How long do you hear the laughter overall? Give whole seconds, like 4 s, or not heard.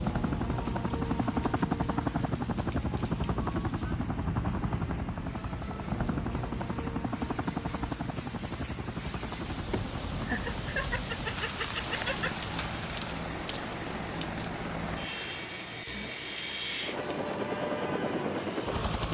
3 s.